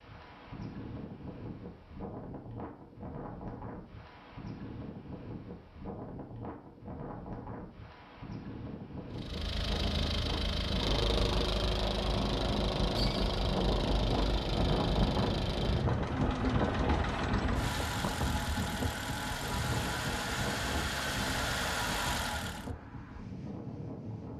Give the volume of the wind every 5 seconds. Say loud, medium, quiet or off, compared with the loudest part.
medium, medium, loud, loud, medium.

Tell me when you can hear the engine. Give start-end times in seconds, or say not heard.
9.1-22.7.